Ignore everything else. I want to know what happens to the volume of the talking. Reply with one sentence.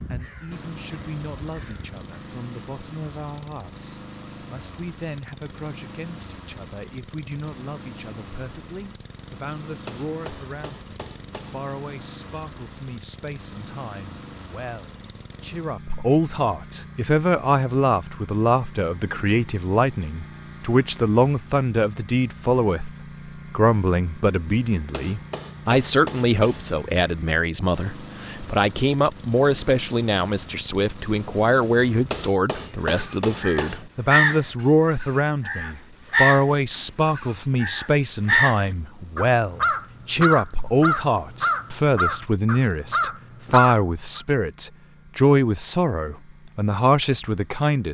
The volume of the talking goes up.